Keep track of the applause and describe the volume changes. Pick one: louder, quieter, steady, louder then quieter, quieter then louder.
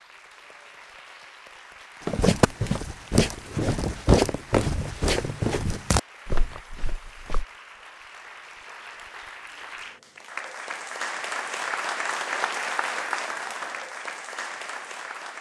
louder.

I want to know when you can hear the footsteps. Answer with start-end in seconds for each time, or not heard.
2.0-7.5.